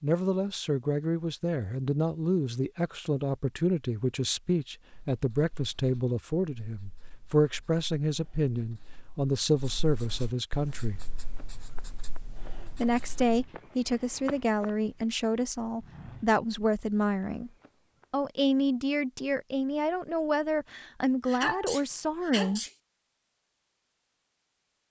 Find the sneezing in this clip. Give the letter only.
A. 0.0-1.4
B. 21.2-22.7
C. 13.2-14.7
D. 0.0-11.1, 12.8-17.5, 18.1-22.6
B.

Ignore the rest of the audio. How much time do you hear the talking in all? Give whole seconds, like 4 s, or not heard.
20 s.